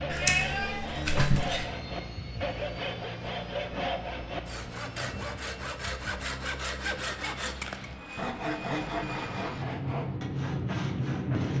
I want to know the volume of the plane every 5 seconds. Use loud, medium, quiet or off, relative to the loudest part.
medium, medium, loud.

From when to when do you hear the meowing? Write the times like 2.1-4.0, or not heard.
0.1-1.7.